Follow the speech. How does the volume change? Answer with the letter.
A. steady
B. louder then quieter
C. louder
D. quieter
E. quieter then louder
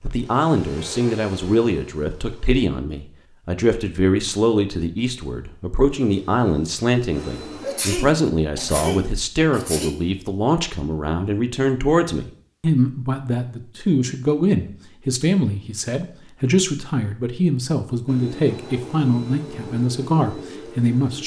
A.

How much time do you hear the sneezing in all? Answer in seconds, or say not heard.
2 s.